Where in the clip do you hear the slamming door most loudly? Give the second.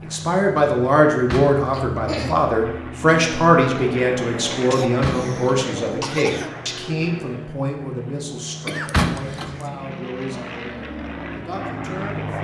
9 s.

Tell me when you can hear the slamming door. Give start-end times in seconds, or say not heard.
1.3-1.9, 5.0-5.4, 8.9-9.6.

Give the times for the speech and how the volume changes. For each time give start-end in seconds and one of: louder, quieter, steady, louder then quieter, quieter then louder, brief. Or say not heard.
0.0-12.3 quieter.